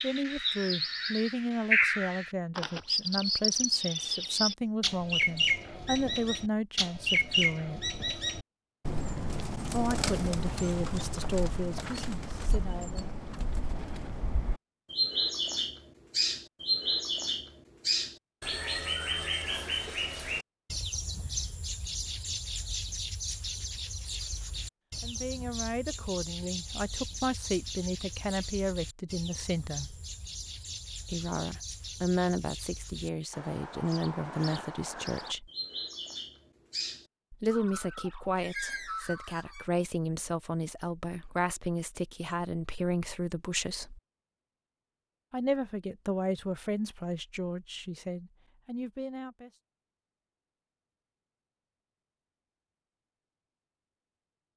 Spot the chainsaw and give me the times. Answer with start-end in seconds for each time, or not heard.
not heard.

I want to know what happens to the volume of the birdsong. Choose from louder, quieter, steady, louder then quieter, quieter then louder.
quieter.